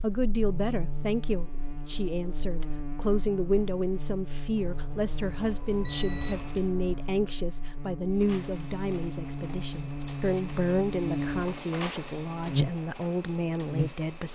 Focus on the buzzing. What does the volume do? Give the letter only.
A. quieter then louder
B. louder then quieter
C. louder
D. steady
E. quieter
C.